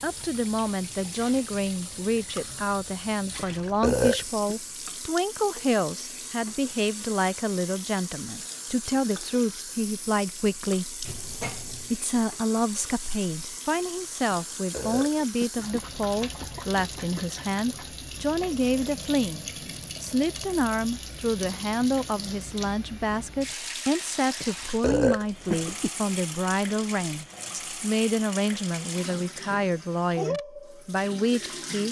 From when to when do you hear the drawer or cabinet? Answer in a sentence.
You can hear the drawer or cabinet from 11.1 to 11.9 s.